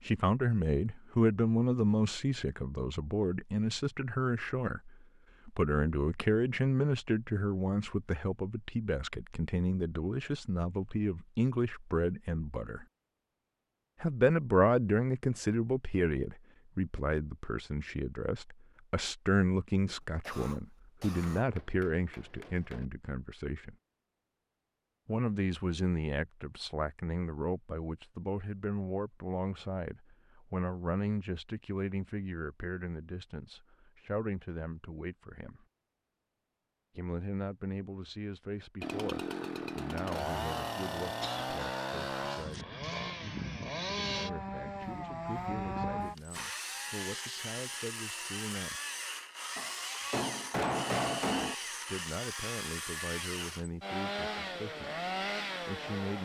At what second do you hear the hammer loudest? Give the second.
51 s.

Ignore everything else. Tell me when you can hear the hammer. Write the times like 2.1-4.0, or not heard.
21.4-22.9, 49.5-51.5.